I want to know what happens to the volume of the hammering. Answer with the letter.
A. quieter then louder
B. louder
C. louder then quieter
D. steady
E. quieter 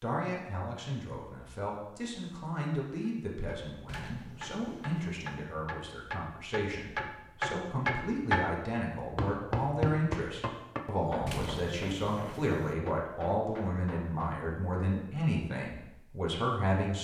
C.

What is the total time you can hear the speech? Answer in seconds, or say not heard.
17 s.